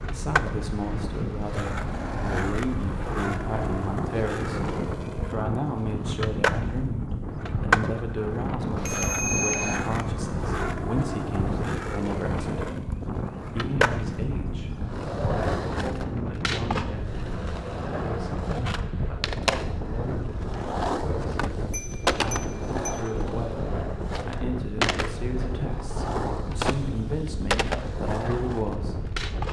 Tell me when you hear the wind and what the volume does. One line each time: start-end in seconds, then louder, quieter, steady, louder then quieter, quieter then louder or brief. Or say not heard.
0.0-29.4 steady.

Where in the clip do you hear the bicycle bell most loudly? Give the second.
9 s.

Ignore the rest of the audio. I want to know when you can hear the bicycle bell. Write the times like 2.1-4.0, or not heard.
8.8-9.8, 21.7-23.1.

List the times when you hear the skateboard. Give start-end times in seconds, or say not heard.
0.0-29.4.